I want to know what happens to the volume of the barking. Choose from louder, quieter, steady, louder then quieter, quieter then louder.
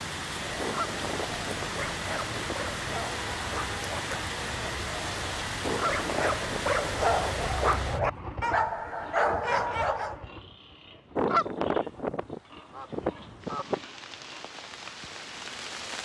louder.